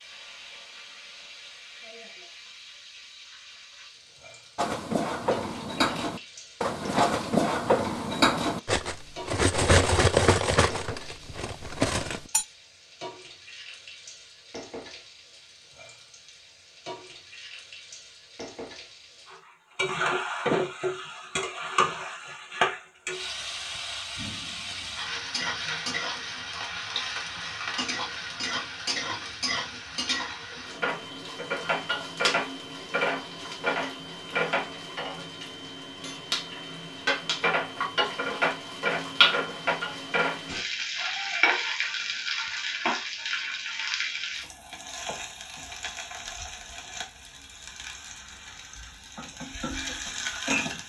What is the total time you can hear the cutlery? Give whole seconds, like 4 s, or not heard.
8 s.